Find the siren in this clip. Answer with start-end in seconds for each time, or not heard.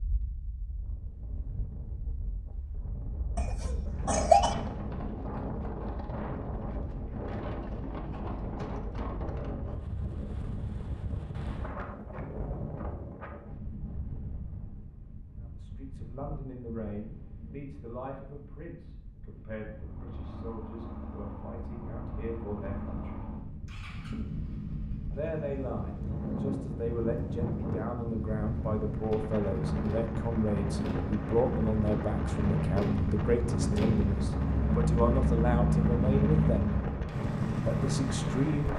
not heard.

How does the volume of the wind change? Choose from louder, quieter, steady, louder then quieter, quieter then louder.
quieter then louder.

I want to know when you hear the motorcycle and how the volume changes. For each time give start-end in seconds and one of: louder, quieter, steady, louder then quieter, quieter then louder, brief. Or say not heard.
19.7-38.7 louder.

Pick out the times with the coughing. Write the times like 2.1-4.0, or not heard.
3.4-4.5.